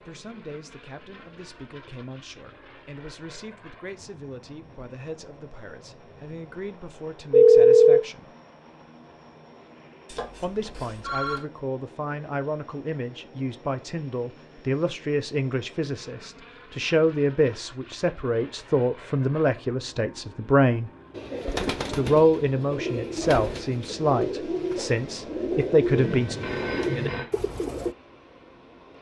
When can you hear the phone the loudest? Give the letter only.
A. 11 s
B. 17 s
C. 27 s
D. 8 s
D.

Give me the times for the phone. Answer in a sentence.
The phone can be heard from 7.3 to 8.0 s, from 10.1 to 11.4 s and from 25.9 to 27.2 s.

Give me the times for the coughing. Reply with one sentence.
You can't hear the coughing here.